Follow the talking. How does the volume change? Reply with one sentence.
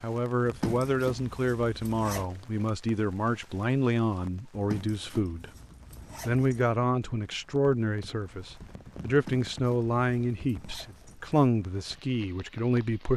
The loudness of the talking stays about the same.